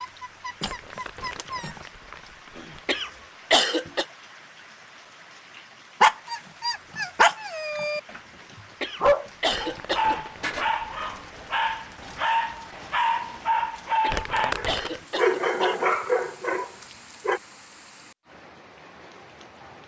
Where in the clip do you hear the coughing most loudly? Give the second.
4 s.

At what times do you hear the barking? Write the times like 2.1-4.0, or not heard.
0.0-1.8, 6.0-8.2, 9.0-17.4.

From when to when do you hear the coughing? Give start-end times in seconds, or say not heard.
2.9-4.0, 8.8-10.2, 14.0-15.8.